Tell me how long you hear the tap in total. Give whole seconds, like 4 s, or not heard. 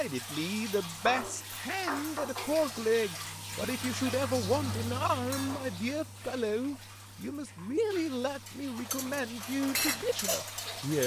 11 s.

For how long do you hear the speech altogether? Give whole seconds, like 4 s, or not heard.
11 s.